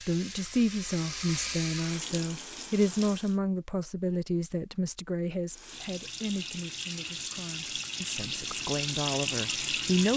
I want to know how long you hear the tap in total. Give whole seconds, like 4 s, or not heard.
8 s.